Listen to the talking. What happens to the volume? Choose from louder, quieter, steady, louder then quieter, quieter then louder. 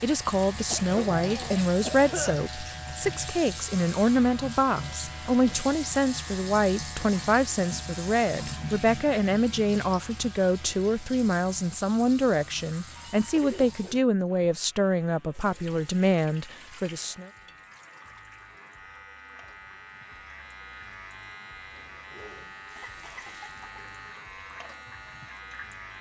steady.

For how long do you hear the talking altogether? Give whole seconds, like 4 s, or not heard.
17 s.